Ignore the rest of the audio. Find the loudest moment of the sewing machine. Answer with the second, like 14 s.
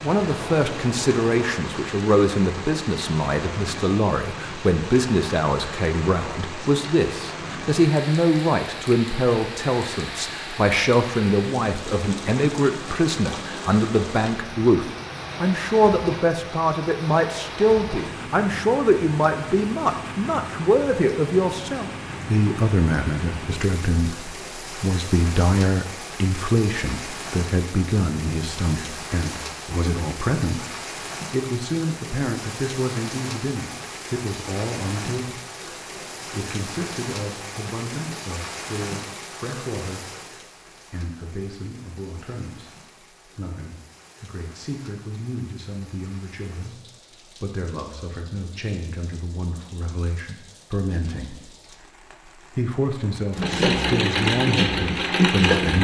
55 s.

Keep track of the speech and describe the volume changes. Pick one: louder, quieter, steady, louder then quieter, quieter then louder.
quieter.